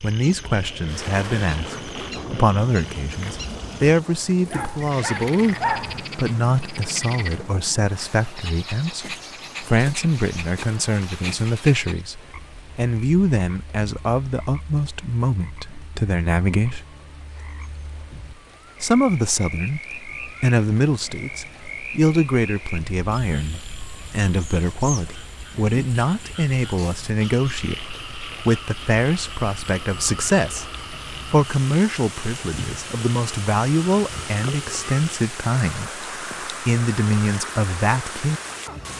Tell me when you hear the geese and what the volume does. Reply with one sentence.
You can't hear the geese here.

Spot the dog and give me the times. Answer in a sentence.
The dog can be heard from 4.5 to 6.0 s.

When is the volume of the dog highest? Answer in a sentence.
The volume of the dog peaks at 6 seconds.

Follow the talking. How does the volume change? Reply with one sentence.
The volume of the talking stays about the same.